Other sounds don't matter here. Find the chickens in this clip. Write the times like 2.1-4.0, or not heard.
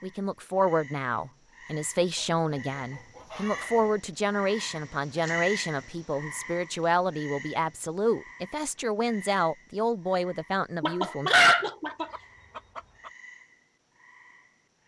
2.1-4.0, 10.8-13.1.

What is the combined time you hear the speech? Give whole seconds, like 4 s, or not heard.
11 s.